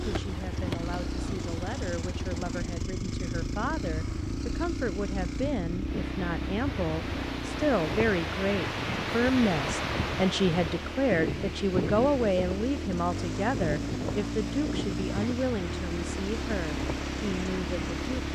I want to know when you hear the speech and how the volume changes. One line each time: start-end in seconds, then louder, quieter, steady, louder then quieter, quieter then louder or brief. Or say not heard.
0.0-18.3 louder then quieter.